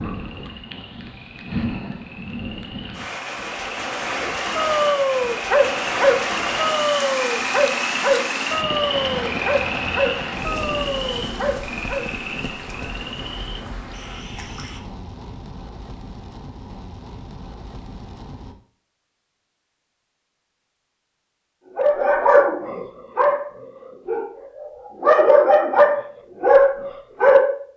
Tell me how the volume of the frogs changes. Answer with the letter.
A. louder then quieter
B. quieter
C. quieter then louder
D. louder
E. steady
A.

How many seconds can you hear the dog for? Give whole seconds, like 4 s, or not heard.
14 s.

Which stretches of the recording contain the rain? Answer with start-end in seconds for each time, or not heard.
0.0-18.6.